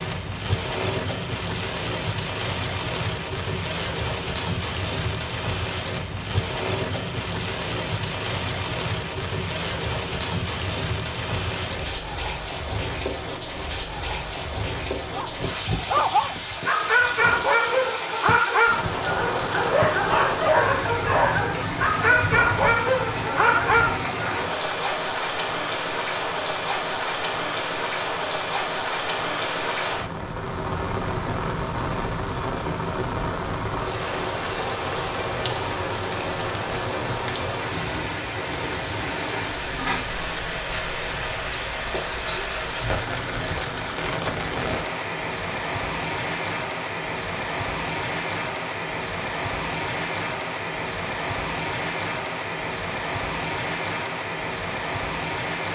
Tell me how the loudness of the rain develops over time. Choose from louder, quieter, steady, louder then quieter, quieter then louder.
steady.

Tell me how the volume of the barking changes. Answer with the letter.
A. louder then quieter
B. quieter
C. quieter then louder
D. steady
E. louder
D.